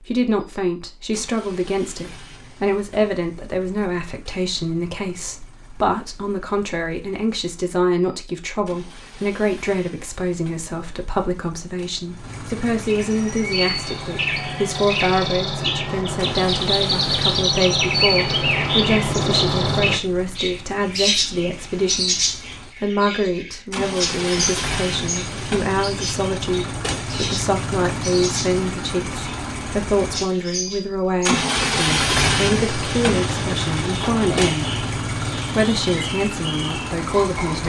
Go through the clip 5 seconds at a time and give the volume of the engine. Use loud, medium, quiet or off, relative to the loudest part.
quiet, quiet, quiet, quiet, medium, medium, loud, medium.